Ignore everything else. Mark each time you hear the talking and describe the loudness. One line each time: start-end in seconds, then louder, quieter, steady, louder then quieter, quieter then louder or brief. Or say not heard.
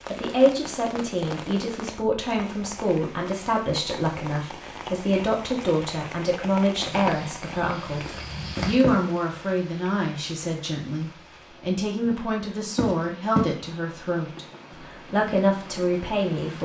0.1-16.5 steady.